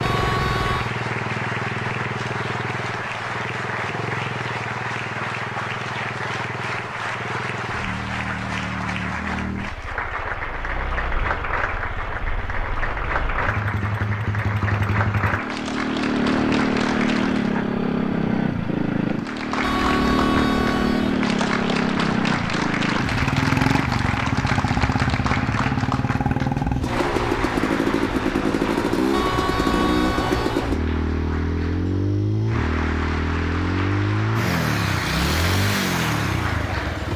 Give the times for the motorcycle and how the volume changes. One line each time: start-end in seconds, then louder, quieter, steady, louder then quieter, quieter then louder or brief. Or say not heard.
0.0-37.1 louder.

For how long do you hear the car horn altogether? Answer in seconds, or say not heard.
4 s.